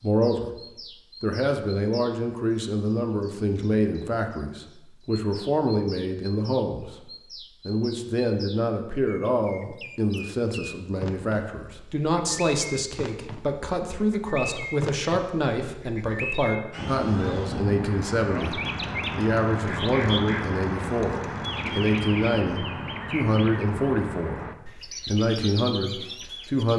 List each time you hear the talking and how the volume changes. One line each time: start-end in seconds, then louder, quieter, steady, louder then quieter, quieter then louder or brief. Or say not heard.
0.0-0.5 brief
1.2-24.4 steady
25.1-26.7 brief.